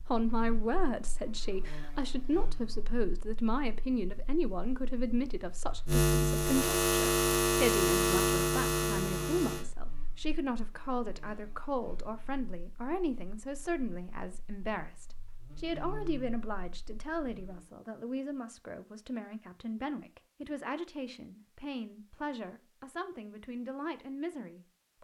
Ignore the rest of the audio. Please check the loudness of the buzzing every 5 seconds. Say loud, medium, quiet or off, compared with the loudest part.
quiet, loud, quiet, quiet, off.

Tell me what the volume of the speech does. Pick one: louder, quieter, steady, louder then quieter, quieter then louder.
quieter.